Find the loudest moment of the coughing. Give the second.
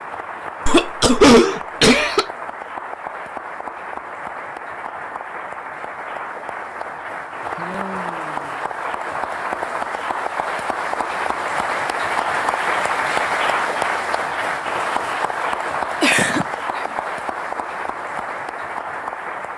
1 s.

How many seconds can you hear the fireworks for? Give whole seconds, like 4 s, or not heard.
not heard.